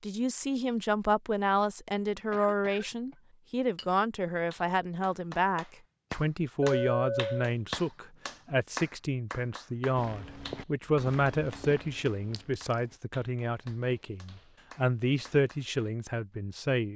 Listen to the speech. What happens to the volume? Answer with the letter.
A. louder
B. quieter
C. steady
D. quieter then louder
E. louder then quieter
C.